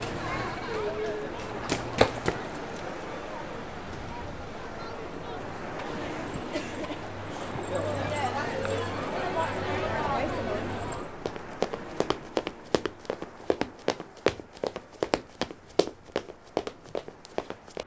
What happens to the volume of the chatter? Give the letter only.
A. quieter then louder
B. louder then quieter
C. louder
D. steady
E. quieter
A.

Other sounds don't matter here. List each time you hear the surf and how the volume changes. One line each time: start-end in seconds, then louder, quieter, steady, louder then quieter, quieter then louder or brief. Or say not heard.
0.0-17.8 quieter.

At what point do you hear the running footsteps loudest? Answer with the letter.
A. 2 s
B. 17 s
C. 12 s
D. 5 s
A.